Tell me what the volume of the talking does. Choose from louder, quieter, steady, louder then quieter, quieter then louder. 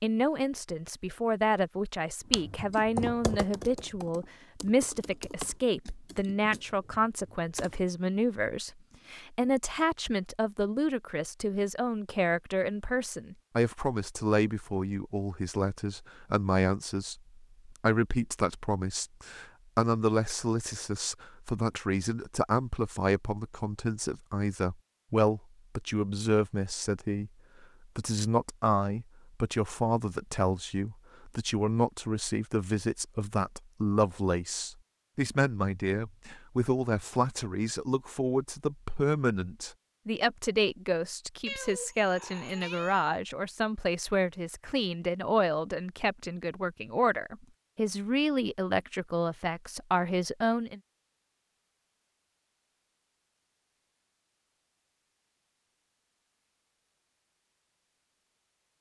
steady.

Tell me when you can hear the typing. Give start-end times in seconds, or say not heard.
2.3-7.9.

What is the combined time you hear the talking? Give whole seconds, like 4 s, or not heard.
50 s.